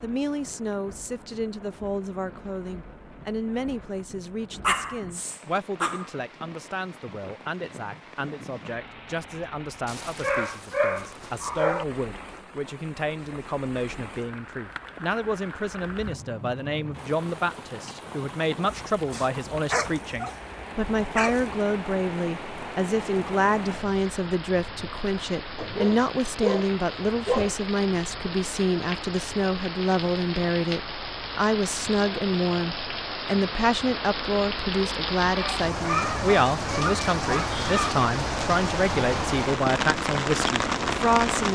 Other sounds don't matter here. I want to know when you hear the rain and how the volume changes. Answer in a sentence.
The rain can be heard from 0.0 to 41.5 s, getting louder.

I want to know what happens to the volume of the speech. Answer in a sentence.
The volume of the speech goes up.